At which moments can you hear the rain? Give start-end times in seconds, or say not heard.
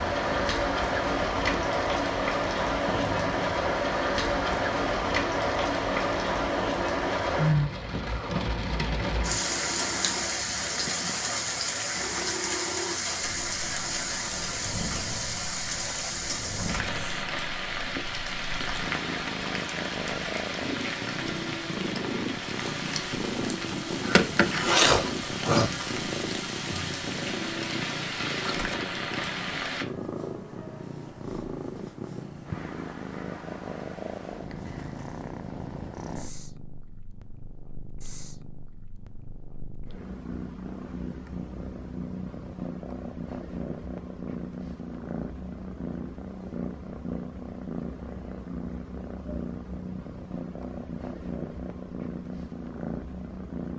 0.0-29.9.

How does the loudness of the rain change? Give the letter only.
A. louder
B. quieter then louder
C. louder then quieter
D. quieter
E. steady
D.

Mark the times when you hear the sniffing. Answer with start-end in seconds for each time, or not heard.
24.0-25.8.